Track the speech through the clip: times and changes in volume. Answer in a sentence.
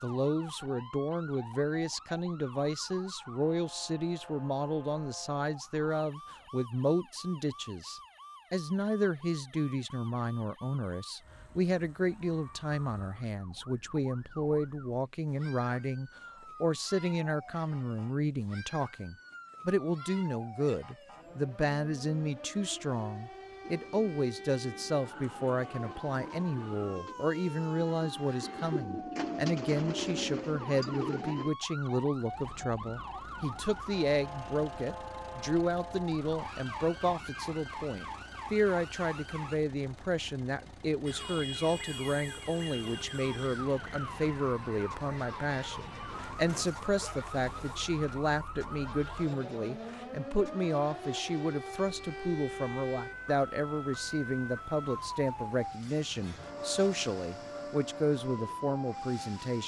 You can hear the speech from 0.0 to 59.6 s, at a steady volume.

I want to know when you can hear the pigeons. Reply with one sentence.
The pigeons can be heard from 23.6 to 31.5 s.